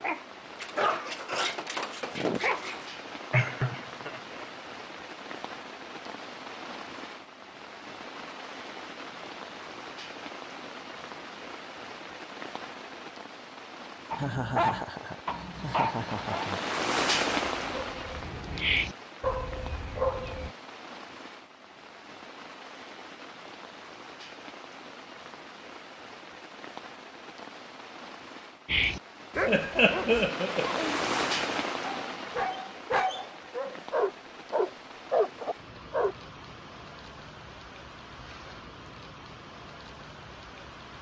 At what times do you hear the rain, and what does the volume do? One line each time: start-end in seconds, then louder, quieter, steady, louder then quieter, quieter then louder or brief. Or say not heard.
0.0-40.9 louder then quieter.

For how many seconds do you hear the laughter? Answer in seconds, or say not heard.
5 s.